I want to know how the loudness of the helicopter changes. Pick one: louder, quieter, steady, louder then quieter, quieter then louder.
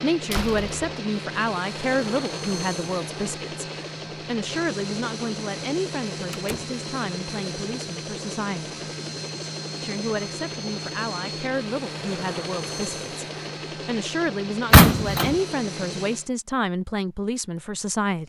steady.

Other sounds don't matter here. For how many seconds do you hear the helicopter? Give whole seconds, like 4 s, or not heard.
16 s.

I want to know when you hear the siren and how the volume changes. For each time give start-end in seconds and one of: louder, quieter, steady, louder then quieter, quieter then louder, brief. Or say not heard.
not heard.